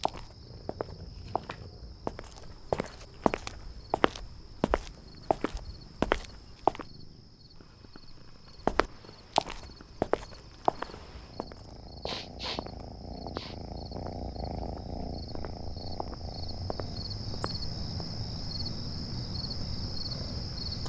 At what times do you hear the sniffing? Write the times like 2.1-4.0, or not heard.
12.1-13.6.